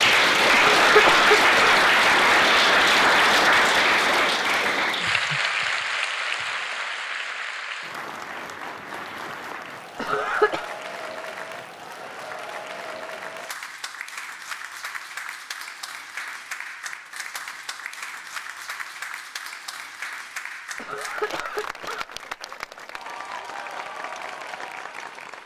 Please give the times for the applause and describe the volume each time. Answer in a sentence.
The applause can be heard from 0.0 to 25.4 s, getting quieter.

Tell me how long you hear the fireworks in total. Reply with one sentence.
The fireworks can't be heard in this clip.